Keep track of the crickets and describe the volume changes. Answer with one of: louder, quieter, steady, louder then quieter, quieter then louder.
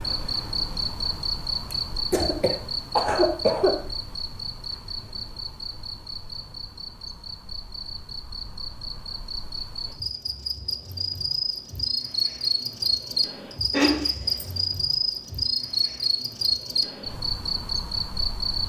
quieter then louder.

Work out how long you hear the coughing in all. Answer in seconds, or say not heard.
3 s.